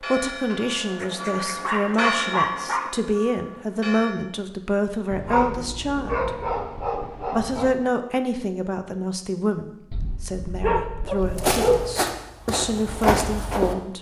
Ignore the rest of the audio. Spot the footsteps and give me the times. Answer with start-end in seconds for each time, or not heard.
11.3-13.8.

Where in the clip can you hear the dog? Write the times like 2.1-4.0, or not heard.
0.9-2.9, 5.1-7.8, 9.9-11.8.